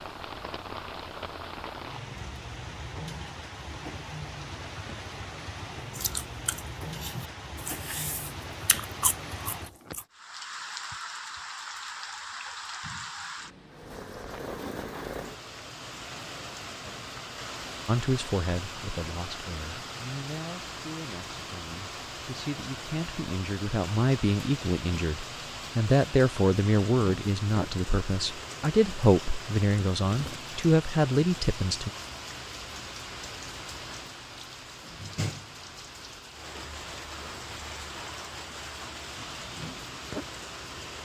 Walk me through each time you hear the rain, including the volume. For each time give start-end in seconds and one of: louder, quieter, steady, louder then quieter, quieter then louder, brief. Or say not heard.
0.0-41.0 steady.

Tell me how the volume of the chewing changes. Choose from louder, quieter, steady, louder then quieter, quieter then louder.
louder.